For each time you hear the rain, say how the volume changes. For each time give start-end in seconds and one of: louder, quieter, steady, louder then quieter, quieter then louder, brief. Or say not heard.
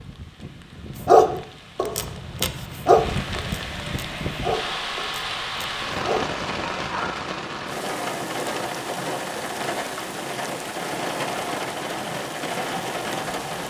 0.0-13.6 louder.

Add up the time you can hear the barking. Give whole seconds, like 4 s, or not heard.
6 s.